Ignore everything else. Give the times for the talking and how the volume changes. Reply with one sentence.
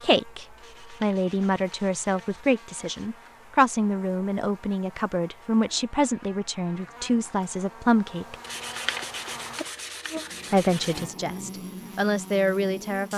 You can hear the talking from 0.0 to 8.3 s, at a steady volume; and briefly from 10.5 to 13.1 s.